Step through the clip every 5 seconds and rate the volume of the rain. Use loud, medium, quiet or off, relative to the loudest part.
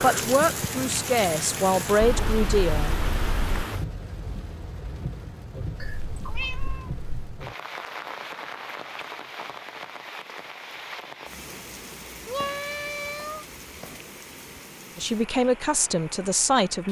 loud, medium, medium, quiet.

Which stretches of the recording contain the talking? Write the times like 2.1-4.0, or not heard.
0.0-2.9, 14.9-16.8.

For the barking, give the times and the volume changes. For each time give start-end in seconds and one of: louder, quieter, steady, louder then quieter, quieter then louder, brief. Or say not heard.
not heard.